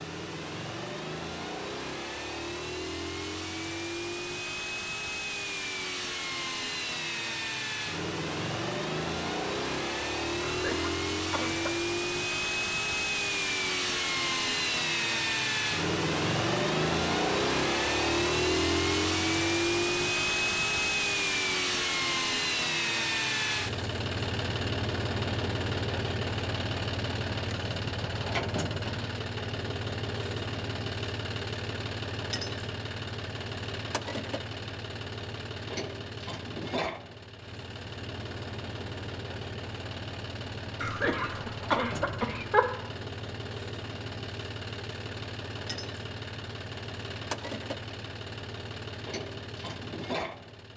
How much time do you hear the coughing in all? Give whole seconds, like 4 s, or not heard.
3 s.